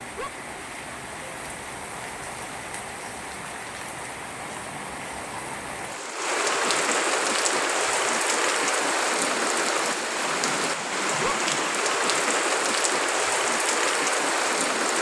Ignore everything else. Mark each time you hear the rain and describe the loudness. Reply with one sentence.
You can hear the rain from 0.0 to 14.9 s, getting louder.